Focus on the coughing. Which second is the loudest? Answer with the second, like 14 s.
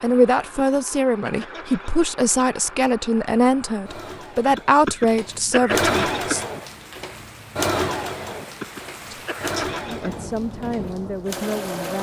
6 s.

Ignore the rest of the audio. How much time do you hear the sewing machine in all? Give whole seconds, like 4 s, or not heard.
12 s.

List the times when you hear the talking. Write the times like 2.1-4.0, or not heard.
0.0-6.5, 9.1-11.9.